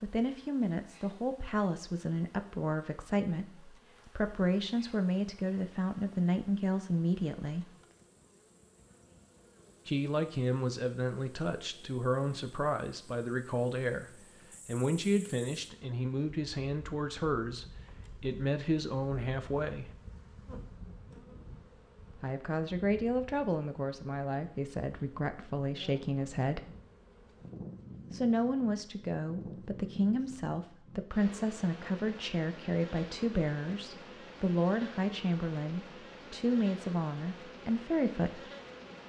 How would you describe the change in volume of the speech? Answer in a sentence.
The loudness of the speech stays about the same.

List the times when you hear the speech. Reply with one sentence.
The speech can be heard from 0.0 to 7.7 s, from 9.8 to 19.9 s, from 22.1 to 26.7 s and from 28.1 to 38.5 s.